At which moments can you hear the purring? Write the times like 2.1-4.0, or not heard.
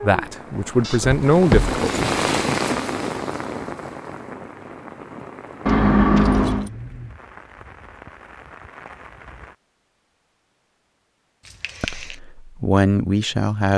not heard.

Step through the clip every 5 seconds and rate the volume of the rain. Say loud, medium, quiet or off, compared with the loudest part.
loud, quiet, off.